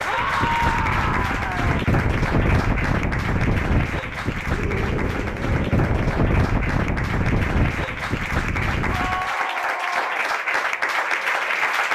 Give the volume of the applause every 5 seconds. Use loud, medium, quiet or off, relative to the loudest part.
medium, medium, loud.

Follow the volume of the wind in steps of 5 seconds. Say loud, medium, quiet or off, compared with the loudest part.
loud, loud, off.